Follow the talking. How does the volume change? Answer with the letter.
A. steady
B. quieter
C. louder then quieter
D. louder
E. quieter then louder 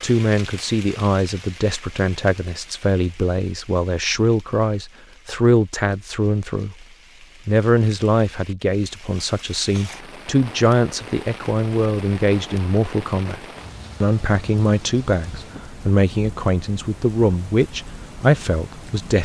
A.